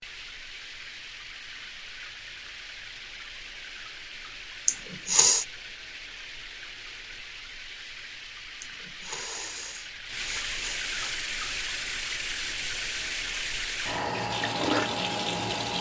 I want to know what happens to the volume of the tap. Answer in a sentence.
The volume of the tap goes up.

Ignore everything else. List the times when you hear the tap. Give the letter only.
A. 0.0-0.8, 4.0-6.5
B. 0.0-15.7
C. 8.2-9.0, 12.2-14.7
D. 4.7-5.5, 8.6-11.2
B.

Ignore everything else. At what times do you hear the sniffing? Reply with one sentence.
You can hear the sniffing from 4.7 to 5.5 s and from 8.6 to 11.2 s.